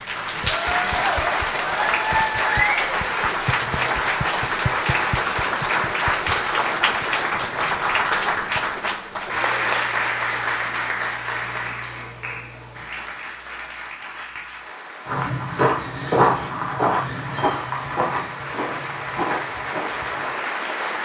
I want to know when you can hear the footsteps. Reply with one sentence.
The footsteps can be heard from 15.1 to 20.4 s.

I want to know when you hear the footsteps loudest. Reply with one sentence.
The volume of the footsteps peaks at 16 seconds.